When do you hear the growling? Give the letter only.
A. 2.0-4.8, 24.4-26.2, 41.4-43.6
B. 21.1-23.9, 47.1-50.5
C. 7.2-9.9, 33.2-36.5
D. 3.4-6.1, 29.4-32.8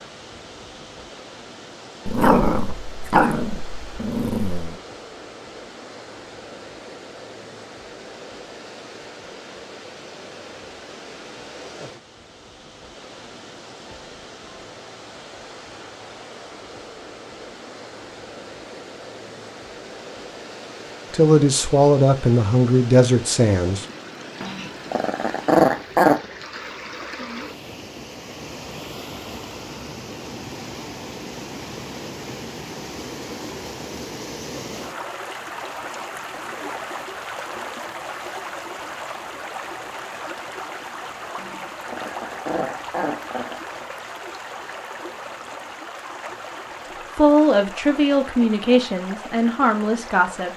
A.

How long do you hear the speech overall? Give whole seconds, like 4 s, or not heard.
6 s.